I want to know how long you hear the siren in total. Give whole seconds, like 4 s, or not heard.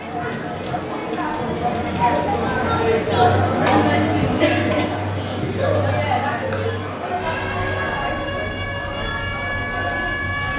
3 s.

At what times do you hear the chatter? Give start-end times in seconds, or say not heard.
0.0-10.5.